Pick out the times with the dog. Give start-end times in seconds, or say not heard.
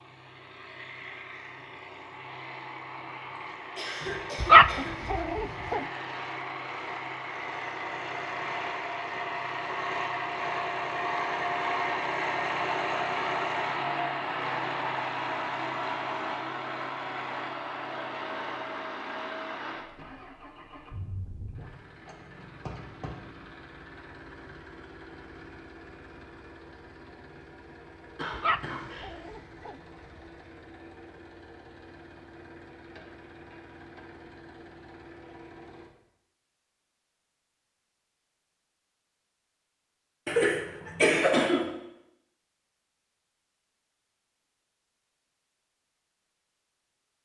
4.4-5.8, 28.3-29.8.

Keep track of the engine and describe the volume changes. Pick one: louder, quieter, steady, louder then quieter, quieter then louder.
louder then quieter.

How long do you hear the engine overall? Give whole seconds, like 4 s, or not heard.
36 s.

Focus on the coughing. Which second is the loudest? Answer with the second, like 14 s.
41 s.